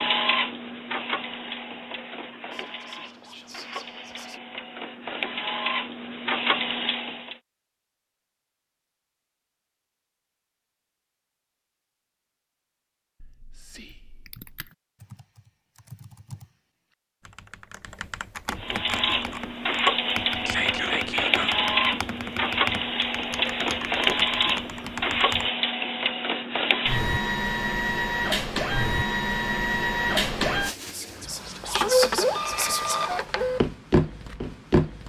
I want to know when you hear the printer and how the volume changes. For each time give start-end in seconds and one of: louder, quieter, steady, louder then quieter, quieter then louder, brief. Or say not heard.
0.0-7.3 quieter then louder
18.6-35.0 steady.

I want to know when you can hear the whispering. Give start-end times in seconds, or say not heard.
2.5-4.4, 13.2-14.7, 20.4-21.6, 30.9-33.3.